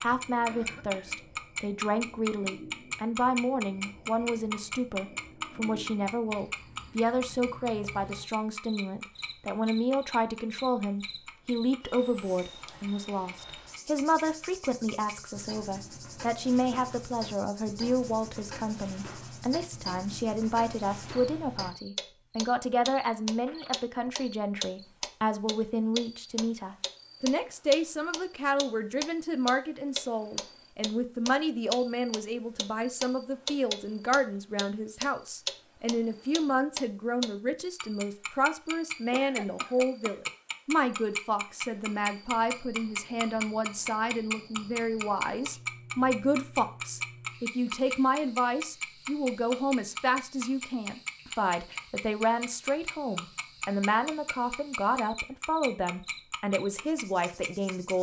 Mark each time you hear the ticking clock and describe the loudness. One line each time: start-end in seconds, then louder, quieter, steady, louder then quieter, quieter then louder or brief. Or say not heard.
0.0-57.9 quieter then louder.